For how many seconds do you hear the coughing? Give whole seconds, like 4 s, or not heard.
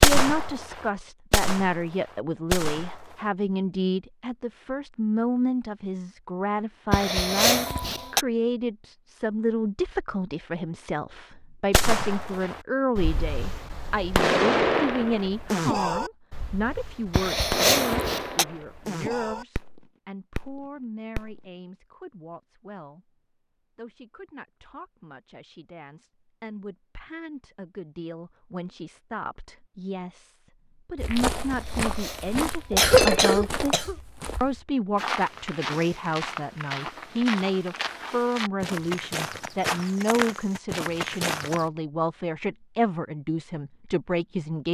5 s.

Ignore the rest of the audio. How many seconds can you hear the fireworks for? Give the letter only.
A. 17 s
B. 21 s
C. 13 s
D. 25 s
C.